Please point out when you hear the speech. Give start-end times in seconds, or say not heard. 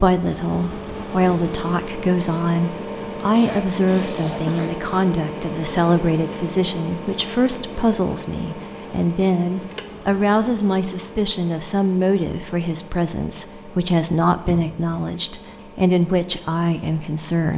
0.0-17.5.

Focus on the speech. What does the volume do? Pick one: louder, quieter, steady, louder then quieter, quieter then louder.
steady.